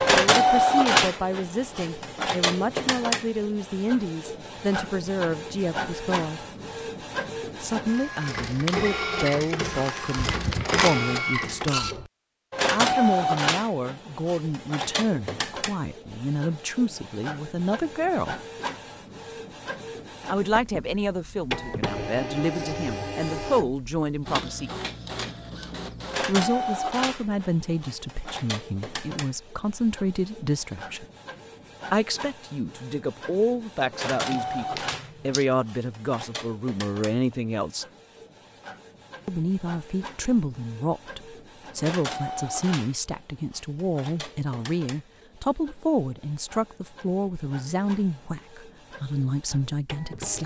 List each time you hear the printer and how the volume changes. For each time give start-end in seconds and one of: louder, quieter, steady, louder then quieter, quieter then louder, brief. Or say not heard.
0.0-50.4 quieter.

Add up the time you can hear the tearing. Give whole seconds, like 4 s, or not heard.
4 s.